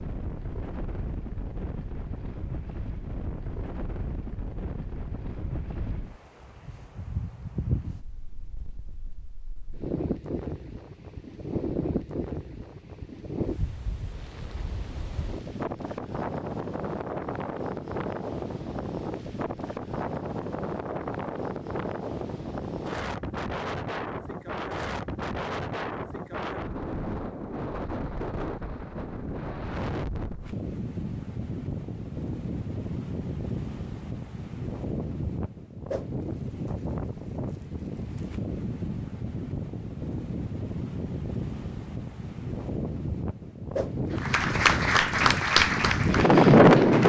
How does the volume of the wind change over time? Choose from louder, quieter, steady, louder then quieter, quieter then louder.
louder.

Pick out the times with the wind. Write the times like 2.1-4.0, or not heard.
0.0-47.0.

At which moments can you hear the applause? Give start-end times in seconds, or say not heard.
44.1-47.0.